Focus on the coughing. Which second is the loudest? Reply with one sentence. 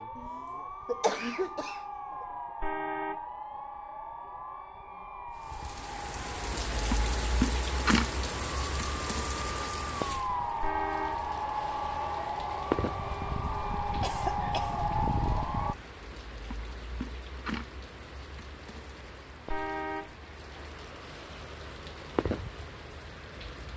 The volume of the coughing peaks at 1 second.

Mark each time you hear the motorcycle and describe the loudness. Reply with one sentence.
The motorcycle can't be heard in this clip.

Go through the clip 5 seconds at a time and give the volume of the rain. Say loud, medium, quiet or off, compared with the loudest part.
off, loud, medium, medium, medium.